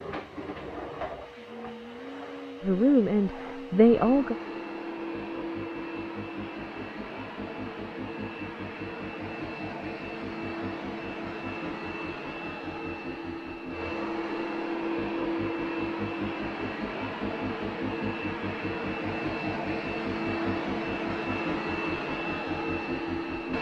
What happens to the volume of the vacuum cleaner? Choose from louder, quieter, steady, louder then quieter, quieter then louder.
louder.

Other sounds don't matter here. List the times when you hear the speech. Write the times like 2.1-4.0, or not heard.
2.6-4.3.